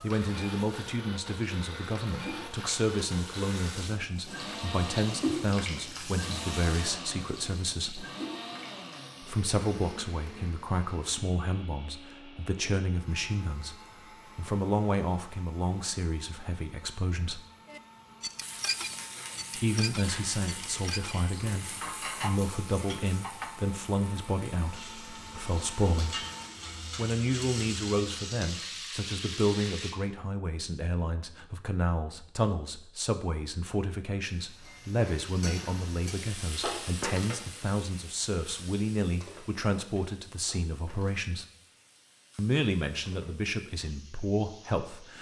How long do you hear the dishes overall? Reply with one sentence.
You can hear the dishes for 6 seconds altogether.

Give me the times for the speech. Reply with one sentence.
The speech can be heard from 0.0 to 8.1 s, from 9.2 to 13.8 s, from 14.3 to 17.4 s, from 19.6 to 26.2 s, from 26.9 to 41.5 s and from 42.4 to 45.1 s.